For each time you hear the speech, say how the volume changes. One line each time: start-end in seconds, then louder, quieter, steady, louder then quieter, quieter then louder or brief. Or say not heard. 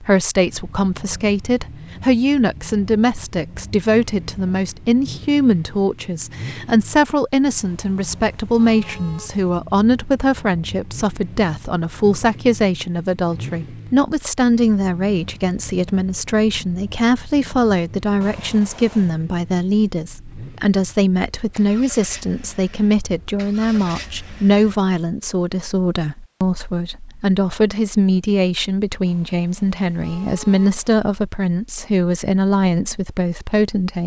0.0-34.0 steady.